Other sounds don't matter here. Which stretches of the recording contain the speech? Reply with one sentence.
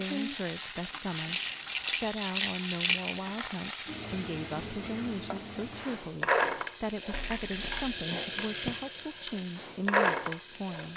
The speech can be heard from 0.0 to 10.9 s.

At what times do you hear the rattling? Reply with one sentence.
You can hear the rattling from 1.1 to 3.3 s and from 7.1 to 8.0 s.